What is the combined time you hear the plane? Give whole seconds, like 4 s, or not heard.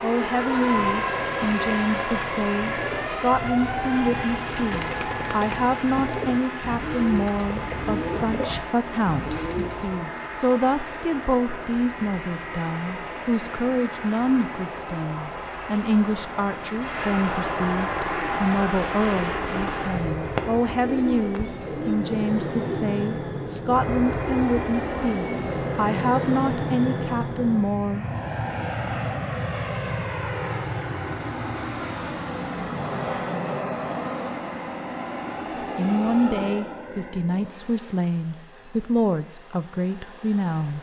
41 s.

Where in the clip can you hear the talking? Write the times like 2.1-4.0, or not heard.
0.0-28.1, 35.8-40.7.